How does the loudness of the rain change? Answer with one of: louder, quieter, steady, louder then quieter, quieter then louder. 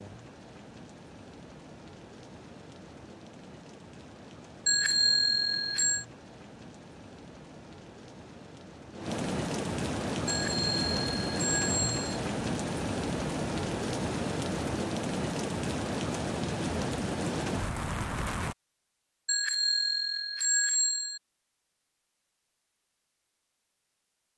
louder.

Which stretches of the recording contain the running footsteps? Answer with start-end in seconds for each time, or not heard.
not heard.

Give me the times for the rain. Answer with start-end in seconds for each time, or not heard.
0.0-18.6.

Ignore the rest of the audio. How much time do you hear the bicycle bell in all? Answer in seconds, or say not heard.
5 s.